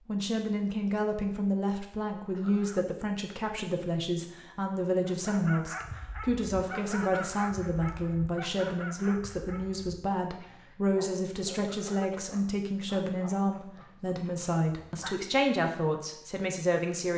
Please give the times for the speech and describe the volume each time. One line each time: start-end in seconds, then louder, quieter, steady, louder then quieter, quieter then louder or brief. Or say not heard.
0.1-17.1 steady.